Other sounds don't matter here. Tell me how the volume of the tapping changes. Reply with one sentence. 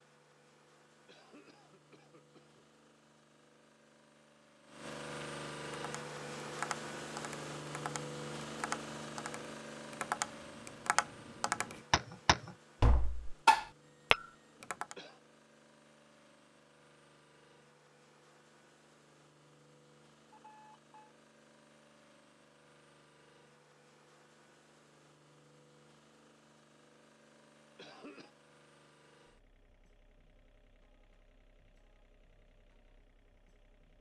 The loudness of the tapping goes up.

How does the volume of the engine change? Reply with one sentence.
The loudness of the engine goes down.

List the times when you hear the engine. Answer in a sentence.
You can hear the engine from 0.0 to 33.9 s.